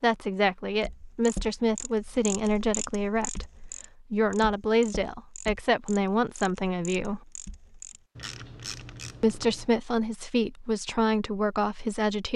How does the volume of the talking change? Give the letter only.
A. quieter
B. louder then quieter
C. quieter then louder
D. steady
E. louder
D.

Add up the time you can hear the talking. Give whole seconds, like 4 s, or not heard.
10 s.